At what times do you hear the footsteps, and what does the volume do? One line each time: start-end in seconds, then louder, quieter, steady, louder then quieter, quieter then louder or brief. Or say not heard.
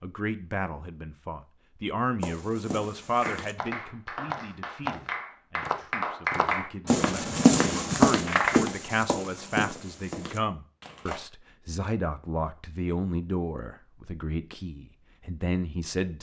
2.2-11.2 louder then quieter.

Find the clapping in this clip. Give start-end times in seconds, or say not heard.
3.0-8.6.